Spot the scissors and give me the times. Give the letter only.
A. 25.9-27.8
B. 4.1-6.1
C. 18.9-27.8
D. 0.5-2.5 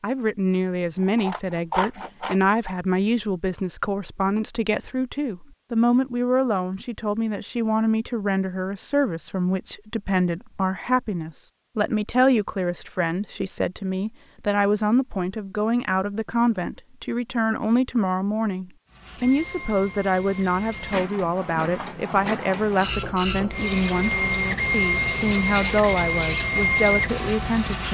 D.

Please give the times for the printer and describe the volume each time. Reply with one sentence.
You can hear the printer from 18.9 to 27.8 s, getting louder.